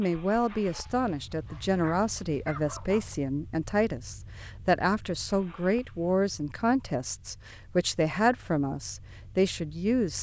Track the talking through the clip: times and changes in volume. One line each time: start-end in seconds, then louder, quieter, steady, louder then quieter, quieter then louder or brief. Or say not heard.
0.0-10.1 steady.